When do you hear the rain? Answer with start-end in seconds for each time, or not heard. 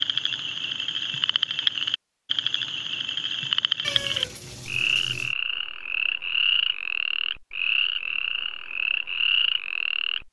not heard.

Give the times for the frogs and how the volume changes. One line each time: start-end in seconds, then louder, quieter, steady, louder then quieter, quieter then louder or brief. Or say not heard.
0.0-10.2 steady.